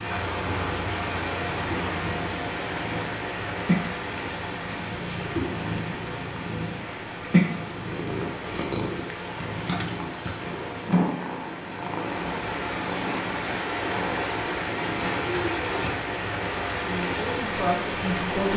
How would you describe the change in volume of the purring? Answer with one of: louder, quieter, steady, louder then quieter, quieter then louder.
louder then quieter.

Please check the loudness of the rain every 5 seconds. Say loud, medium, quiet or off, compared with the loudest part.
loud, medium, loud, loud.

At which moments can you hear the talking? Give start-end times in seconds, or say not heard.
16.8-18.5.